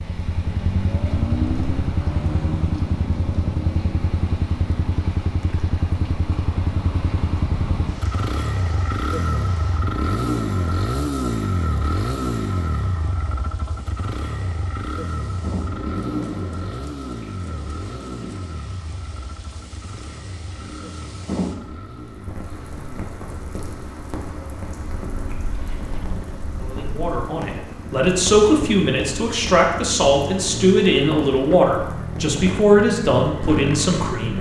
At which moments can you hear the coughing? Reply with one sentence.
The coughing can't be heard in this clip.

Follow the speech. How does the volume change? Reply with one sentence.
The volume of the speech stays about the same.